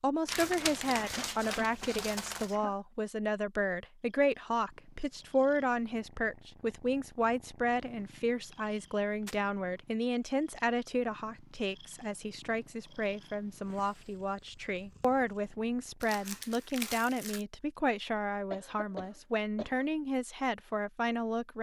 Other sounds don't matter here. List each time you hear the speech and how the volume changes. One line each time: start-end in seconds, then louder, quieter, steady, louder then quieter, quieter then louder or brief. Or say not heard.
0.0-21.5 steady.